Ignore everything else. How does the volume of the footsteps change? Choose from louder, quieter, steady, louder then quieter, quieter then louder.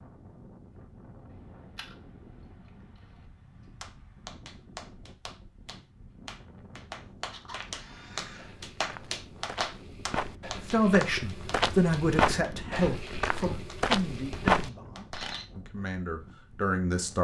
louder.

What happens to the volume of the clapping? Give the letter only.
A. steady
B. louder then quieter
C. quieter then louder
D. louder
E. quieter
B.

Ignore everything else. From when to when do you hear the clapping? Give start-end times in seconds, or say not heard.
3.8-15.3.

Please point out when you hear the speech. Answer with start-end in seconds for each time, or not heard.
10.6-17.1.